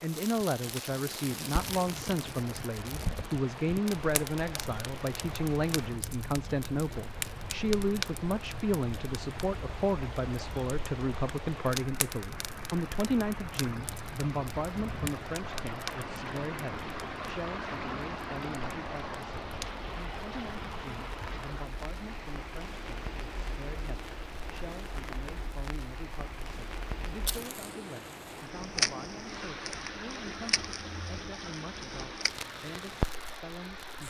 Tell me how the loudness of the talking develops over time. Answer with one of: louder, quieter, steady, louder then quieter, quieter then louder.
quieter.